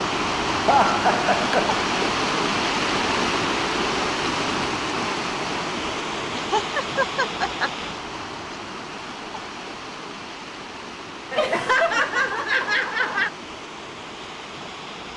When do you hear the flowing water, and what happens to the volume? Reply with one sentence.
You can hear the flowing water from 0.0 to 15.1 s, getting quieter.